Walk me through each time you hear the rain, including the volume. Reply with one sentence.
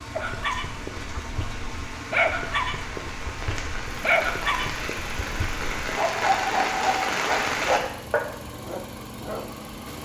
You can hear the rain from 0.0 to 7.8 s, getting louder.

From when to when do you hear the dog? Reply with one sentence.
The dog can be heard from 0.1 to 9.4 s.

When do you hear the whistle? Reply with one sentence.
The whistle can't be heard in this clip.